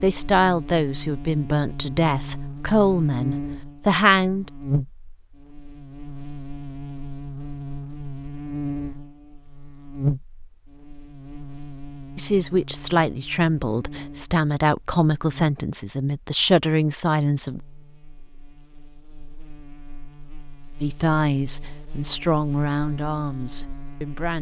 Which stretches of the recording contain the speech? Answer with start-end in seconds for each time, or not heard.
0.0-4.5, 12.2-17.6, 20.8-24.3.